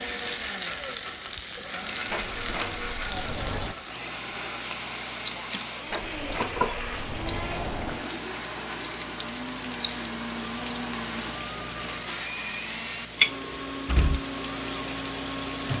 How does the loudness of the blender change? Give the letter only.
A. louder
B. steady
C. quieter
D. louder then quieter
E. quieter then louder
B.